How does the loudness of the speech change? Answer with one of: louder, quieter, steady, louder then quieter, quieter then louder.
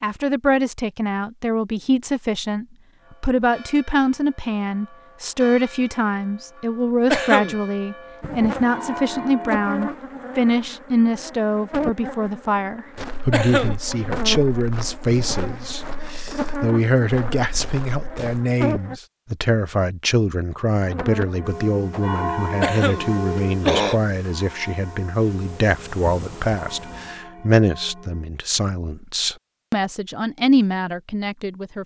steady.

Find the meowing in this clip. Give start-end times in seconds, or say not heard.
not heard.